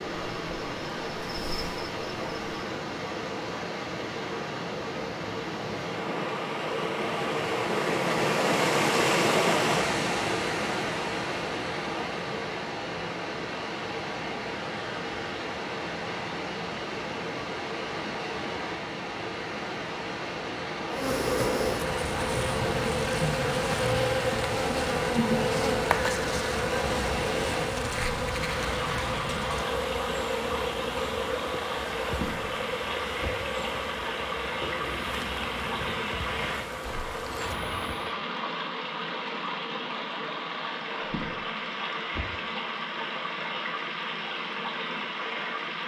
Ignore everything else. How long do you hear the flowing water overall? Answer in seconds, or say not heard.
46 s.